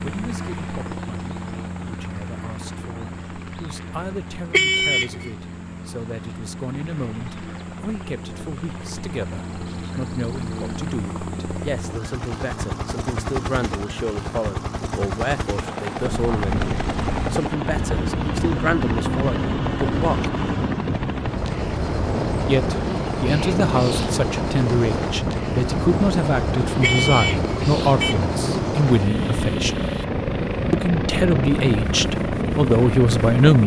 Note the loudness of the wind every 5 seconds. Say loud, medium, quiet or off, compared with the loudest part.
off, off, off, loud, loud, loud, loud.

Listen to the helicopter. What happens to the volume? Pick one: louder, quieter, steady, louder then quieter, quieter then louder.
louder.